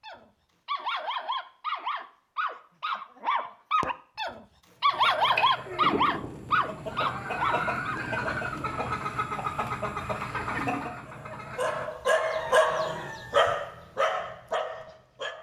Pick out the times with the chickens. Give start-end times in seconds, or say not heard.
4.8-13.4.